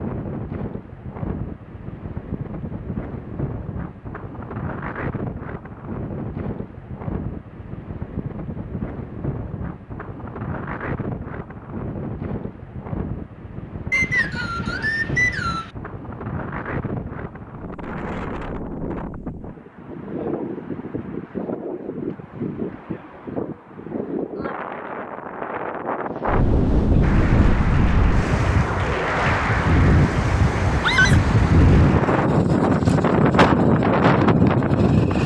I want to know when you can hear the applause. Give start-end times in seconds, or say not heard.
27.0-32.3.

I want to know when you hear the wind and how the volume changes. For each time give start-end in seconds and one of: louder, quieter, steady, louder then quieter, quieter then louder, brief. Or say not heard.
0.0-35.2 louder.